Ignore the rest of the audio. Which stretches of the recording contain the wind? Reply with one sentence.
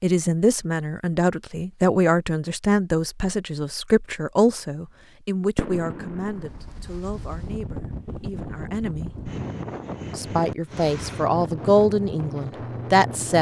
You can hear the wind from 6.3 to 13.3 s.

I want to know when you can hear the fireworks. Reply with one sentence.
The fireworks can be heard from 4.8 to 6.9 s.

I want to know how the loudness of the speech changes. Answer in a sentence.
The loudness of the speech goes down, then up.